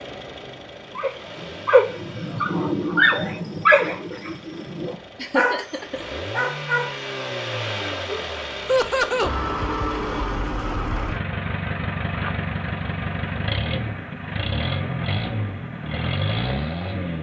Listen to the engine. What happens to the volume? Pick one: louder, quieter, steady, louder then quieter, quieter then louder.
louder.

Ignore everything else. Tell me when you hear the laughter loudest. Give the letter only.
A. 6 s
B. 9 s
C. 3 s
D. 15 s
B.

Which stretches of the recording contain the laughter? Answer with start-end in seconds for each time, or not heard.
5.2-6.2, 8.7-9.3.